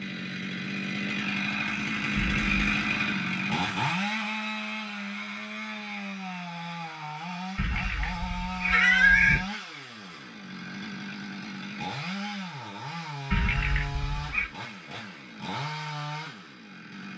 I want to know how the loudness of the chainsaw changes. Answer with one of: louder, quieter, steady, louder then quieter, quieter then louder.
quieter.